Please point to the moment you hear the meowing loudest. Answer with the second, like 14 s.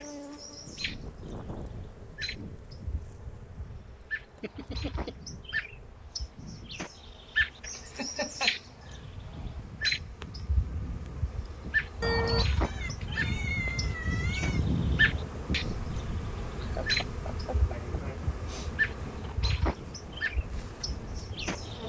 12 s.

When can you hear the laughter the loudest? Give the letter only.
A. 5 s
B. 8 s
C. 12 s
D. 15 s
B.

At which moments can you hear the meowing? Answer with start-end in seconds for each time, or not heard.
12.0-14.6.